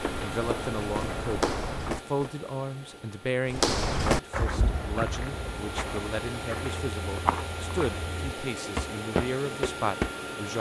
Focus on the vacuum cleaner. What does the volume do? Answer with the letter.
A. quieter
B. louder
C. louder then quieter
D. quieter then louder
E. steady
D.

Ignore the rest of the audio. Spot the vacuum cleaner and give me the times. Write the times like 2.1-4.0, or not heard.
0.0-10.5.